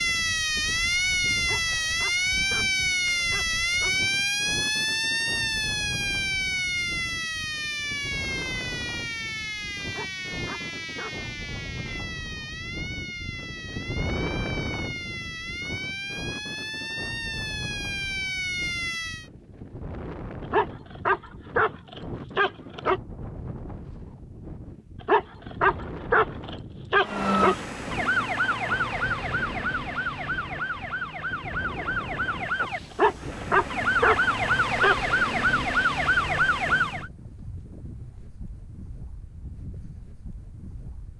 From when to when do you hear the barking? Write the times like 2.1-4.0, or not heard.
1.4-4.0, 9.9-11.2, 20.5-23.0, 25.1-27.6, 33.0-35.0.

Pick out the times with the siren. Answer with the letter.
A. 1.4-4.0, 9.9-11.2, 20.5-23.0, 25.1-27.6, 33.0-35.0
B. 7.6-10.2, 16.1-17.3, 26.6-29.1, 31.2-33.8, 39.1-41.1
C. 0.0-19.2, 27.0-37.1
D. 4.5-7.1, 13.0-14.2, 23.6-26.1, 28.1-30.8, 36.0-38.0
C.